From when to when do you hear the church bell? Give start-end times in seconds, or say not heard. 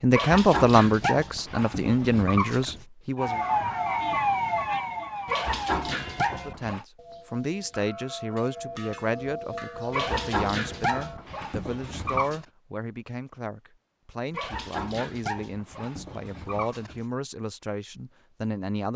5.9-11.2.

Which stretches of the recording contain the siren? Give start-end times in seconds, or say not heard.
3.1-5.8.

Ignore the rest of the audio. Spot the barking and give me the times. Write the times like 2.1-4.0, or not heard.
0.1-2.9, 5.2-6.8, 9.9-12.4, 14.3-17.1.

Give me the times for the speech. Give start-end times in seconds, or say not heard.
0.0-3.4, 6.2-18.9.